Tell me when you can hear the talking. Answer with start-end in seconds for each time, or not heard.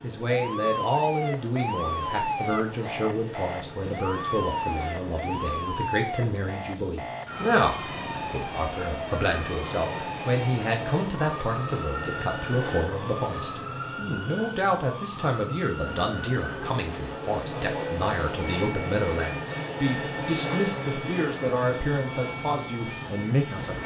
0.0-23.8.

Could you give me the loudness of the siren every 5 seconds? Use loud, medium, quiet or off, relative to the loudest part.
loud, loud, medium, medium, medium.